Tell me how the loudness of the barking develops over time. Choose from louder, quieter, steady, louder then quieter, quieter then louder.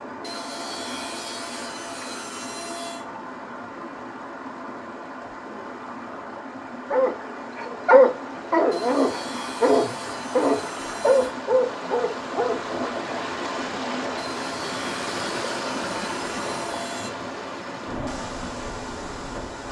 quieter.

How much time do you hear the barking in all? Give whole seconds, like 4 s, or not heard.
6 s.